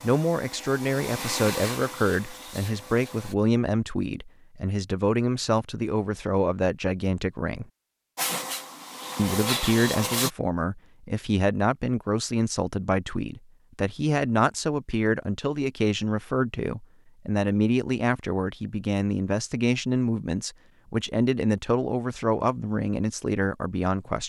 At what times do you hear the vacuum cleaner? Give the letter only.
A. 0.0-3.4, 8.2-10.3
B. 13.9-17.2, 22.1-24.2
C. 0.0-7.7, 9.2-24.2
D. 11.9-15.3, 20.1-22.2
A.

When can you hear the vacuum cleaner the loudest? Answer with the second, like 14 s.
10 s.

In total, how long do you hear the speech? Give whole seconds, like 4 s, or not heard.
23 s.